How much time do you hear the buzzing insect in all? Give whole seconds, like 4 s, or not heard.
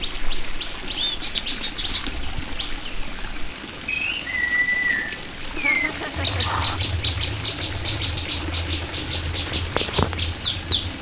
not heard.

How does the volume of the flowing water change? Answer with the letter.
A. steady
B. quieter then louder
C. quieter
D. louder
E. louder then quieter
A.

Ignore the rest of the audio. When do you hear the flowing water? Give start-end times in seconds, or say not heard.
0.0-10.9.